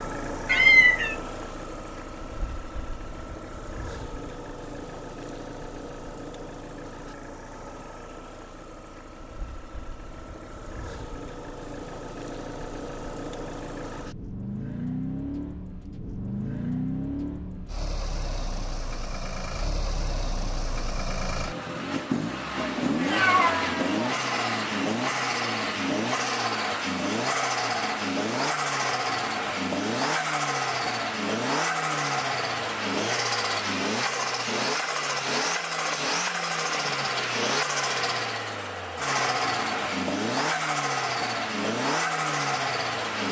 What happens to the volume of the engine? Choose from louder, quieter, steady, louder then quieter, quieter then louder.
louder.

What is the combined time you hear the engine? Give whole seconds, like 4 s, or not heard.
43 s.